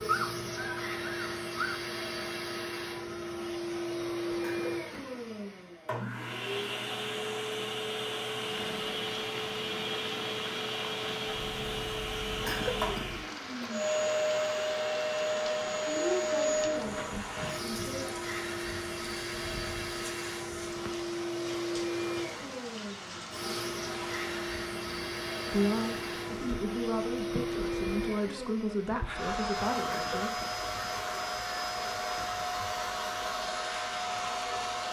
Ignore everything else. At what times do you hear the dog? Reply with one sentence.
You can hear the dog from 0.0 to 1.9 s.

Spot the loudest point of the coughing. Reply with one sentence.
The loudest moment of the coughing is at 13 seconds.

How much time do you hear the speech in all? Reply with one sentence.
You can hear the speech for 7 seconds altogether.